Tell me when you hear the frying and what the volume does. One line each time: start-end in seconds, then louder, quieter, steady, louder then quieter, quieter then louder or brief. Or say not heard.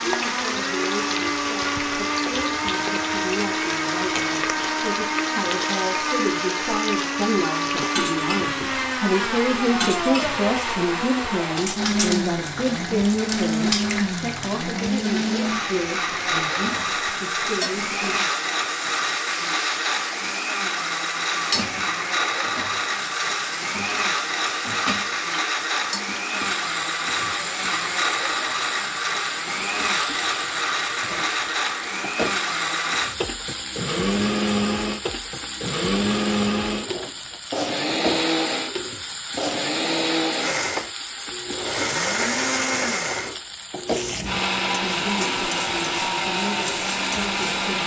0.0-47.8 steady.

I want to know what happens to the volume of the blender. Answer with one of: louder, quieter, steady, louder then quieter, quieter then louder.
steady.